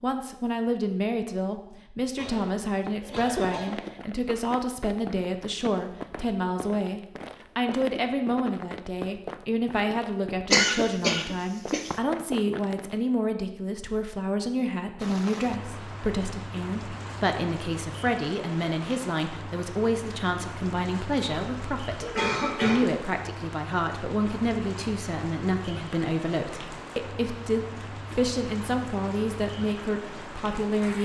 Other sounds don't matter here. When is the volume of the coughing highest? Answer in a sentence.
The volume of the coughing peaks at 11 seconds.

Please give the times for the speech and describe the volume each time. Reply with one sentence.
You can hear the speech from 0.0 to 31.0 s, at a steady volume.